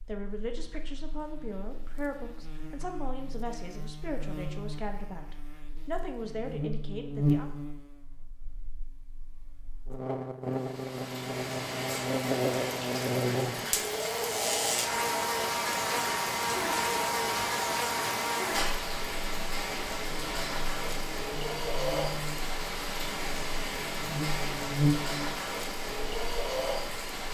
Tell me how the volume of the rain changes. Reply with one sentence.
The loudness of the rain stays about the same.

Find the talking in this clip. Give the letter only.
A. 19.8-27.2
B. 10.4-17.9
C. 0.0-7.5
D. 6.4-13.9
C.